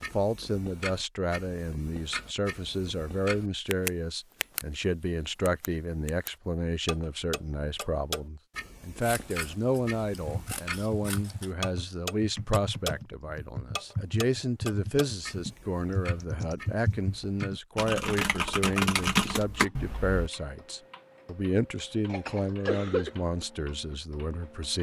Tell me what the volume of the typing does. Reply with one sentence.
The loudness of the typing goes up.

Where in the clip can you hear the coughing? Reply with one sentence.
You can hear the coughing from 22.1 to 23.1 s.